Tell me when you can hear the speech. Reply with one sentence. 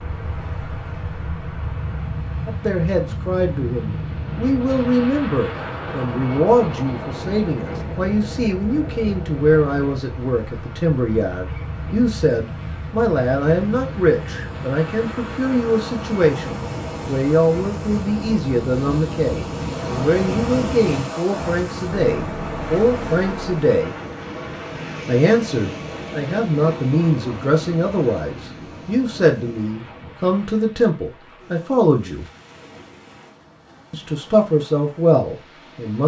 The speech can be heard from 2.5 to 23.9 s, from 25.1 to 32.2 s and from 33.9 to 36.0 s.